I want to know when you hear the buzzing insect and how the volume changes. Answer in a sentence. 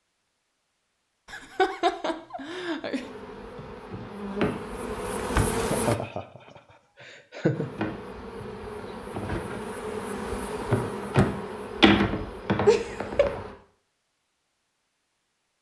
You can hear the buzzing insect briefly from 3.0 to 6.0 s; and from 7.5 to 13.6 s, getting louder then quieter.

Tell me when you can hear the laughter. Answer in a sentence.
You can hear the laughter from 1.3 to 3.0 s, from 5.5 to 6.4 s, from 7.0 to 7.7 s and from 12.7 to 13.4 s.